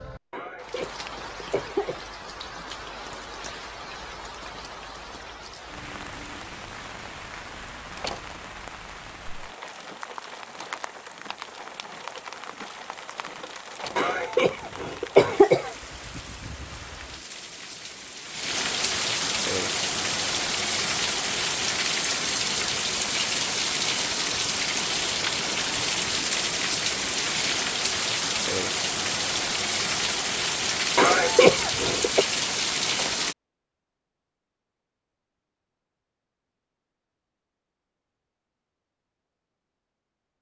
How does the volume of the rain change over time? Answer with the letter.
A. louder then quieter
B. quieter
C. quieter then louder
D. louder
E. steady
D.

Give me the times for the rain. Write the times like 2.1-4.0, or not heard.
0.0-33.4.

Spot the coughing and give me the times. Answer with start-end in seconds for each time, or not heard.
0.3-2.0, 13.9-15.7, 30.9-32.2.